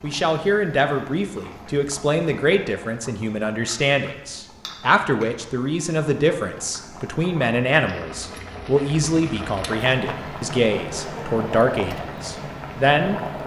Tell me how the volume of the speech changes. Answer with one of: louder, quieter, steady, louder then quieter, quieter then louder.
steady.